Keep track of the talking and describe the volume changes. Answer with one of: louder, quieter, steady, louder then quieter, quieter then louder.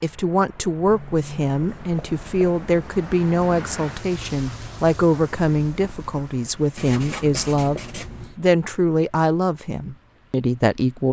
steady.